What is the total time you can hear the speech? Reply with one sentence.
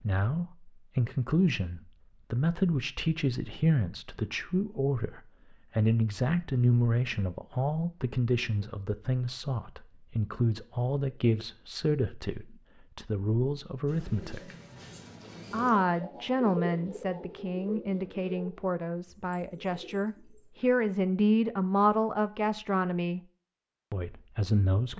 You can hear the speech for 23 seconds altogether.